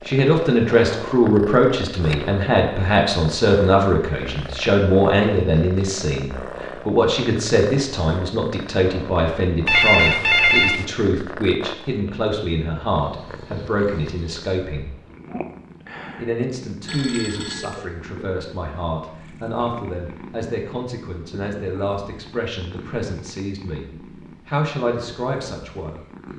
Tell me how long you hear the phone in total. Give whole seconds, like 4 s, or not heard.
2 s.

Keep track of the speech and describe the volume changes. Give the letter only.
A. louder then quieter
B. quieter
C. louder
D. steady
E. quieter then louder
B.